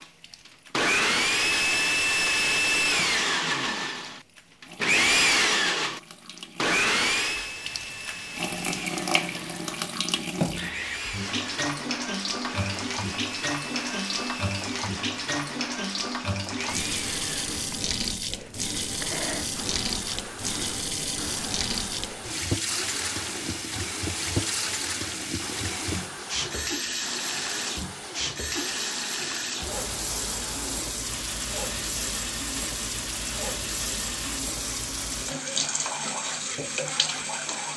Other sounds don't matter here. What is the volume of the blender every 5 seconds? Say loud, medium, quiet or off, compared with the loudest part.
loud, loud, quiet, quiet, quiet, quiet, quiet, quiet.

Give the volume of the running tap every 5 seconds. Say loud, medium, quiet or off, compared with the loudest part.
quiet, loud, loud, loud, loud, loud, loud, loud.